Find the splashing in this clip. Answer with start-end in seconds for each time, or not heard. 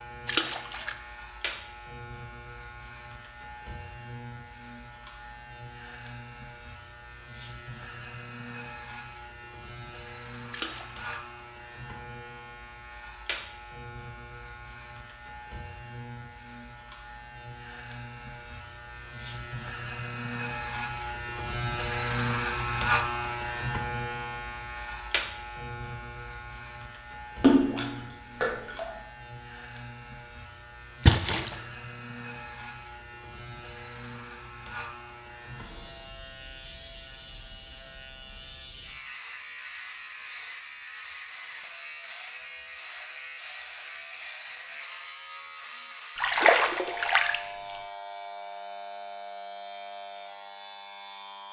0.2-0.9, 10.5-11.2, 27.4-28.9, 31.1-31.6, 46.1-47.4.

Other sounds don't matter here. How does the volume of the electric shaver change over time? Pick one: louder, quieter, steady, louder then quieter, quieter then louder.
louder then quieter.